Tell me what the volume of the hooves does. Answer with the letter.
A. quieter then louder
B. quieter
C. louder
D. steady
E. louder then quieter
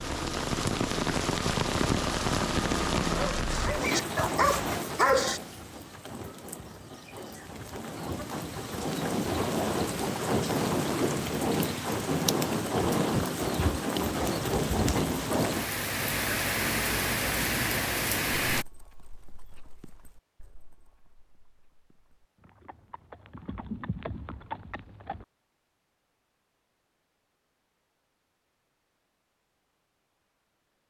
A.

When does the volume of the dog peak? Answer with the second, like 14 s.
5 s.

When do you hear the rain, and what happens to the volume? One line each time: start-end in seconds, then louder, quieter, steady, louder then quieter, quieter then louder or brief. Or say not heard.
0.0-18.6 quieter then louder.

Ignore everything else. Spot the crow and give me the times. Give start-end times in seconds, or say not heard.
not heard.